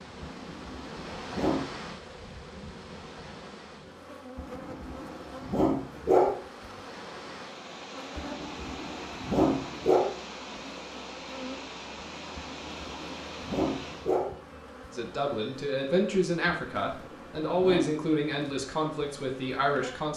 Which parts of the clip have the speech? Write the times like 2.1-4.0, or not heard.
14.9-20.1.